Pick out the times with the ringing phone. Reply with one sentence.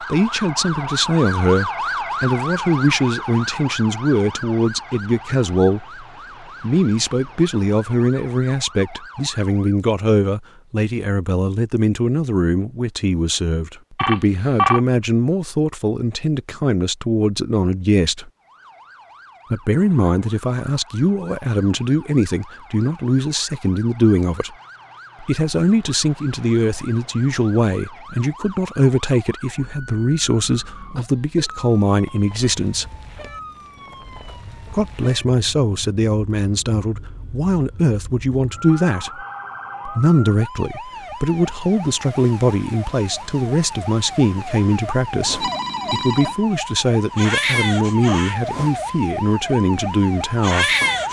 The ringing phone can be heard from 13.9 to 14.8 s and from 45.4 to 46.4 s.